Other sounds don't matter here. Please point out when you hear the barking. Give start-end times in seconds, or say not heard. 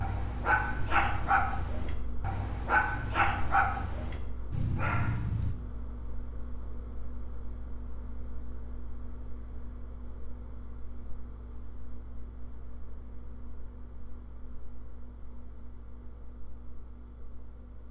0.0-5.5.